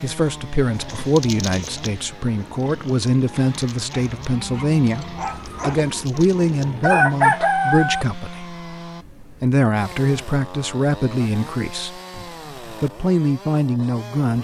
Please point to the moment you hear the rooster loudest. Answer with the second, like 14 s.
7 s.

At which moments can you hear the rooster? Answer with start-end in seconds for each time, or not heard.
5.5-8.1.